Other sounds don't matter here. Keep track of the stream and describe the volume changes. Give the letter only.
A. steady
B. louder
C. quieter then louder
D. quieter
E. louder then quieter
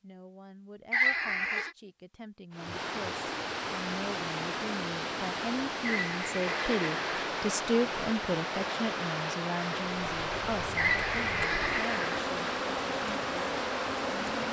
A.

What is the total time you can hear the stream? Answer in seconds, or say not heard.
12 s.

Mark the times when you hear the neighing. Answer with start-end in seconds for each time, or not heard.
0.9-1.7, 5.8-7.2, 10.8-12.2.